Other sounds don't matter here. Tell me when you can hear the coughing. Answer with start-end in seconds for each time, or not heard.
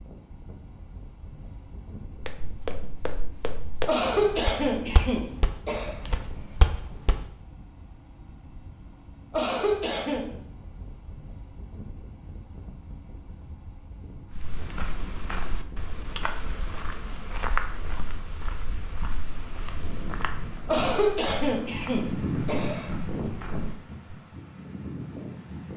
3.9-6.0, 9.3-10.2, 20.6-22.9.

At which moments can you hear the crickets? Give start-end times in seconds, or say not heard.
not heard.